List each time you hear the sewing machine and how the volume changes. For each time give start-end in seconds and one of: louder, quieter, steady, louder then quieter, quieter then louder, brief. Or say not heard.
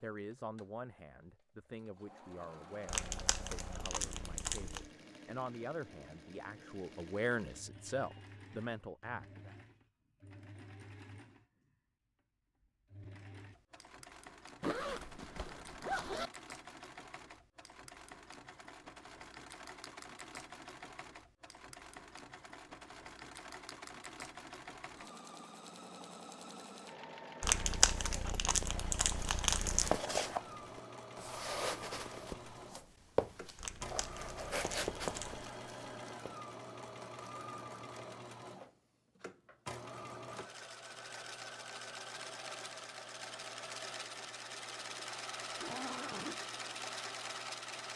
0.0-47.9 louder.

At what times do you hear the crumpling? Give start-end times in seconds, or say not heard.
2.9-4.9, 27.4-30.0, 33.5-35.5.